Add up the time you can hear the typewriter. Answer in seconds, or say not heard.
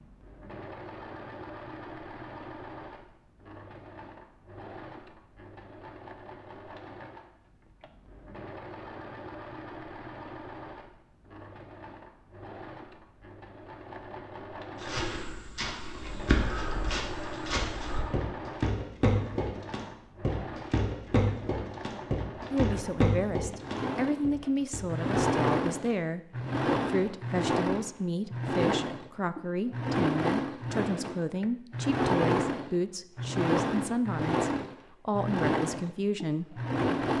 not heard.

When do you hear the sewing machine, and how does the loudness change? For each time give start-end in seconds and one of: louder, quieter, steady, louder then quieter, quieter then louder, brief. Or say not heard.
0.0-37.1 louder.